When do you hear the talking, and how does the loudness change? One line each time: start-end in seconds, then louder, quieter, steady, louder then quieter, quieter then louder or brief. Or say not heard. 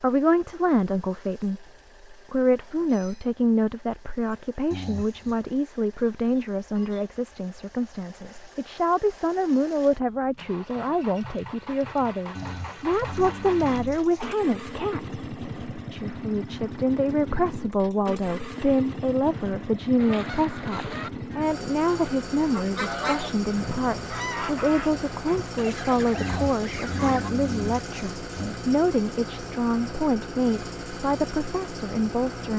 0.0-32.5 steady.